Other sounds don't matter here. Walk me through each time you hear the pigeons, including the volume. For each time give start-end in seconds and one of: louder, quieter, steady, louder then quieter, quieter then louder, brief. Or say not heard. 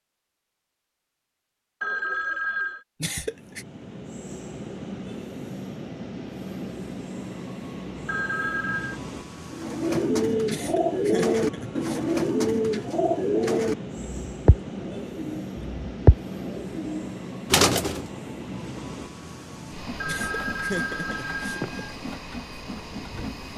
9.5-18.1 steady.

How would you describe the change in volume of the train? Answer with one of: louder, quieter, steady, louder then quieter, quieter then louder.
steady.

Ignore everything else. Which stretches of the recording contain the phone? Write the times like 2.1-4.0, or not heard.
1.8-2.9, 8.1-9.0, 19.9-21.9.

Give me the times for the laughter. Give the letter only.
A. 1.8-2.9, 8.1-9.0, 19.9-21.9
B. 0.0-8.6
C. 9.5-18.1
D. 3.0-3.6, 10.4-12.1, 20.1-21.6
D.